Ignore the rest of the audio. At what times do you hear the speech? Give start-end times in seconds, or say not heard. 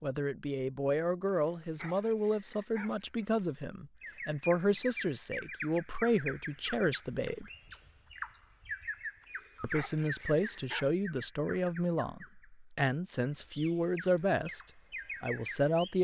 0.0-7.5, 9.6-15.9.